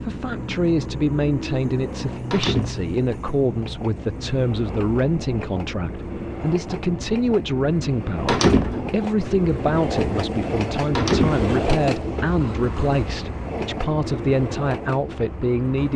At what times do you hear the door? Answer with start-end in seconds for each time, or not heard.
2.3-2.9, 8.2-8.9, 10.9-11.4.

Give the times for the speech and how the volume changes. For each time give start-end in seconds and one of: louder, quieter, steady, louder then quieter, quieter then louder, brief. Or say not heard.
0.0-15.9 steady.